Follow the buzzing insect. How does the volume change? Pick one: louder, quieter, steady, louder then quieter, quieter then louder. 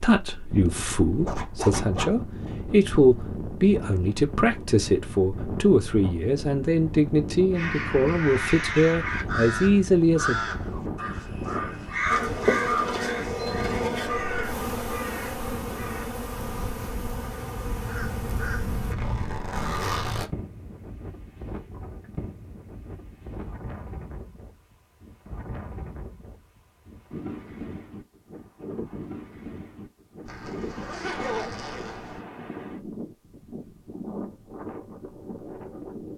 quieter.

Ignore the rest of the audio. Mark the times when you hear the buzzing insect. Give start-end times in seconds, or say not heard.
12.1-18.9.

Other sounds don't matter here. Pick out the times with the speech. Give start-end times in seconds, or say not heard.
0.0-10.5.